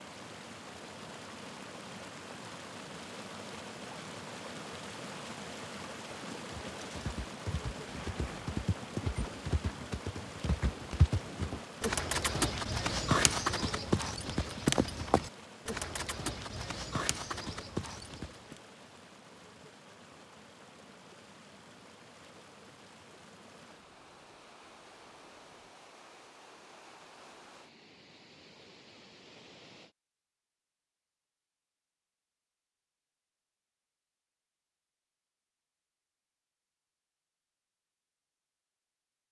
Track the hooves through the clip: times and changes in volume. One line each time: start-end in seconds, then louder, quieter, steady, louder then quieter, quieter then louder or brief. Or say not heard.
6.5-18.6 louder then quieter.